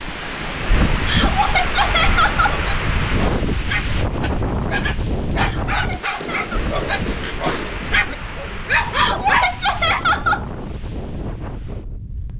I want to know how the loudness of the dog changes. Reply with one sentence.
The volume of the dog goes up.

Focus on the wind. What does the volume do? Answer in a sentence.
The loudness of the wind goes down.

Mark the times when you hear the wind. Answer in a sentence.
The wind can be heard from 0.0 to 12.3 s.